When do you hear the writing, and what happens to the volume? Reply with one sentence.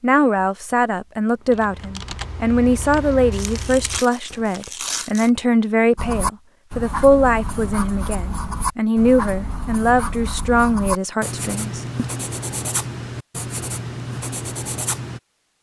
The writing can be heard from 6.0 to 15.2 s, at a steady volume.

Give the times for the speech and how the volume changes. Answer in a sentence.
You can hear the speech from 0.0 to 12.0 s, at a steady volume.